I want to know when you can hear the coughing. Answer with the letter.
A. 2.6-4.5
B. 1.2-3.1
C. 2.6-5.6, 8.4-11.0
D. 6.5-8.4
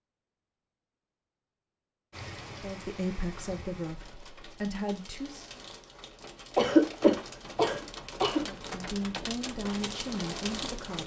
D.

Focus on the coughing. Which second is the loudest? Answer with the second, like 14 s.
7 s.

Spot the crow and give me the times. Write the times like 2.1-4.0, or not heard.
not heard.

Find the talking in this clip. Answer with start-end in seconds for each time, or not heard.
2.6-5.6, 8.4-11.0.